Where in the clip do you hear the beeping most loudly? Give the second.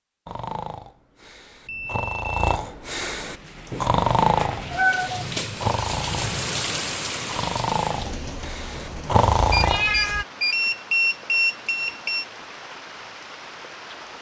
11 s.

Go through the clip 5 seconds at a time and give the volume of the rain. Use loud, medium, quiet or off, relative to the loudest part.
medium, loud, medium.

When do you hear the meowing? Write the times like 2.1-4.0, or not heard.
4.7-5.2, 9.1-10.2.